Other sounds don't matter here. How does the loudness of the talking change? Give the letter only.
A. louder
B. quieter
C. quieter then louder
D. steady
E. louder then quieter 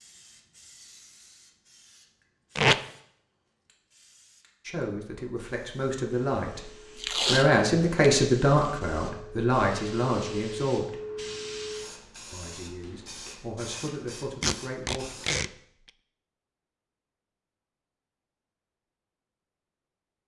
E.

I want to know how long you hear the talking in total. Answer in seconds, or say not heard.
9 s.